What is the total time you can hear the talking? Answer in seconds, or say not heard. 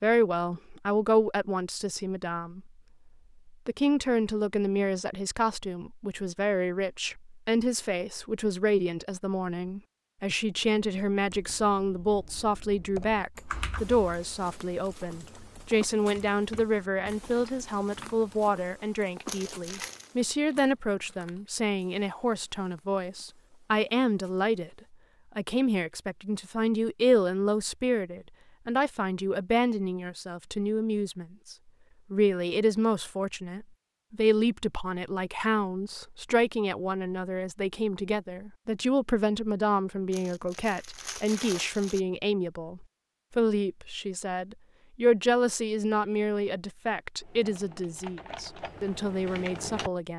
49 s.